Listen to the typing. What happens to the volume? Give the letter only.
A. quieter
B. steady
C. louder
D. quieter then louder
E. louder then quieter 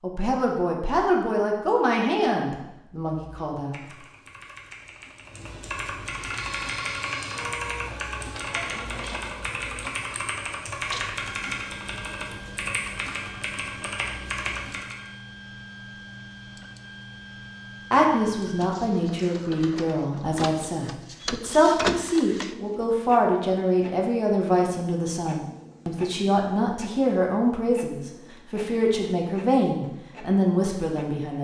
C.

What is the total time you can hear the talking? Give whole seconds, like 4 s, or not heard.
17 s.